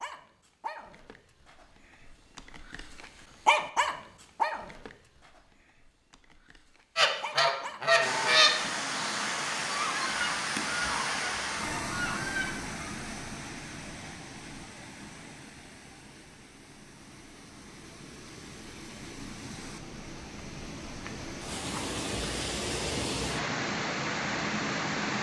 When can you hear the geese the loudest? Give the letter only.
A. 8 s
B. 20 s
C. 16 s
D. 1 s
A.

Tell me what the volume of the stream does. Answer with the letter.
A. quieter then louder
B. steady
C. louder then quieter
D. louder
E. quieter
A.